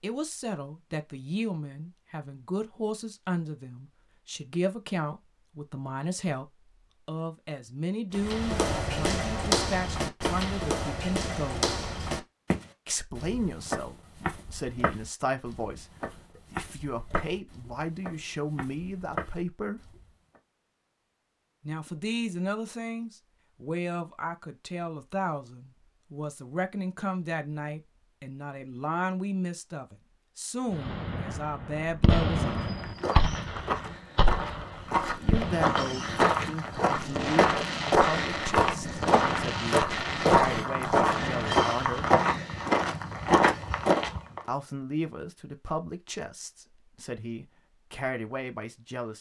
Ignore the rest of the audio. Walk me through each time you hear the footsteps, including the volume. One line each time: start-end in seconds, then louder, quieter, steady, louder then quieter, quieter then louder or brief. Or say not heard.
8.1-20.4 quieter
32.4-44.4 louder.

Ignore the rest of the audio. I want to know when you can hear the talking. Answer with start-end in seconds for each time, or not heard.
0.0-11.7, 12.8-19.9, 21.6-32.6, 35.1-42.1, 44.5-49.1.